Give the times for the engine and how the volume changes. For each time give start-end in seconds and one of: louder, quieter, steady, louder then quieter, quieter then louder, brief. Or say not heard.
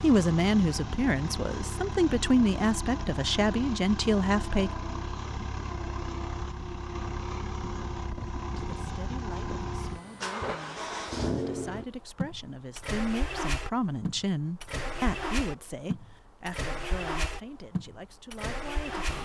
0.0-19.2 steady.